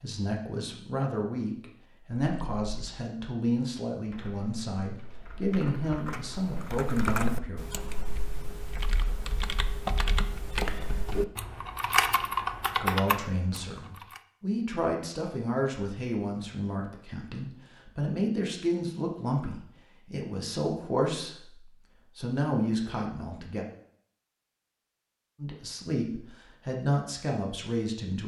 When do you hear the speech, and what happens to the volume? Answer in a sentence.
You can hear the speech from 0.0 to 7.7 s, at a steady volume; from 12.8 to 23.6 s, at a steady volume; and briefly from 25.4 to 28.2 s.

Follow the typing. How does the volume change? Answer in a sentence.
The volume of the typing goes up.